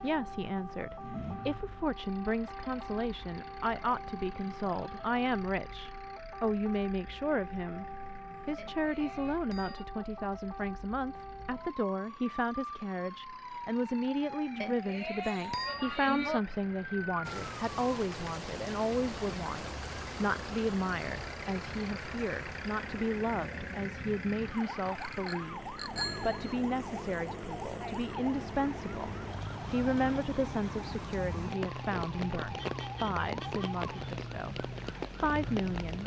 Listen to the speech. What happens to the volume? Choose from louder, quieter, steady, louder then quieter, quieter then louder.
steady.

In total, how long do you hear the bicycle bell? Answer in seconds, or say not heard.
5 s.